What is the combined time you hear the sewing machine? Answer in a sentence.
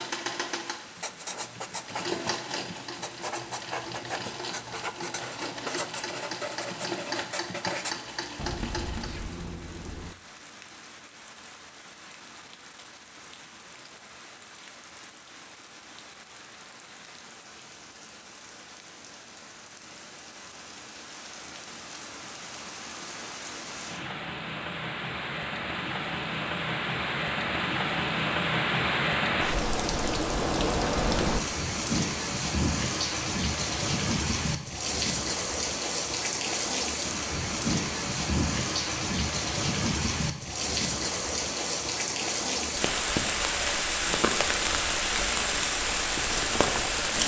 You can hear the sewing machine for 9 seconds altogether.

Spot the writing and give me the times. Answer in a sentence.
You can hear the writing from 0.9 to 10.2 s.